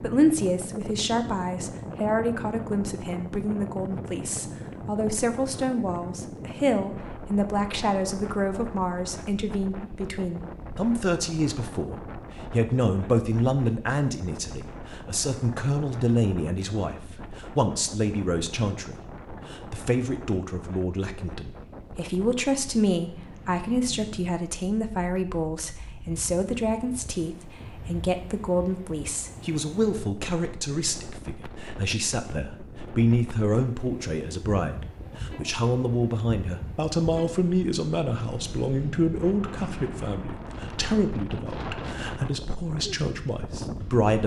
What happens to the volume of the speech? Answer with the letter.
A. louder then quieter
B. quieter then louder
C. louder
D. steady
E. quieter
D.